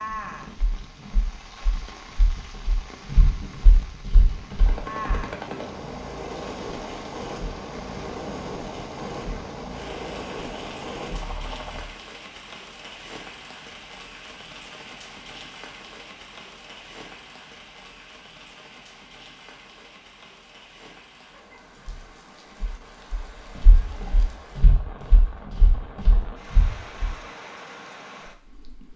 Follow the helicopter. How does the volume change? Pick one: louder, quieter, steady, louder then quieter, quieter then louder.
steady.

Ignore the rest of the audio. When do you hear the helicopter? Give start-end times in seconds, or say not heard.
4.5-11.9.